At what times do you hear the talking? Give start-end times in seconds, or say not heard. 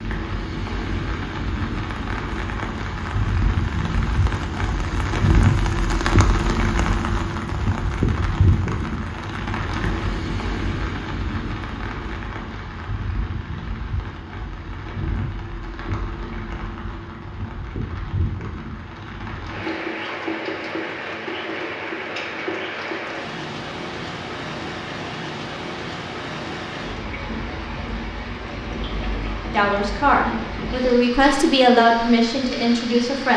29.5-33.3.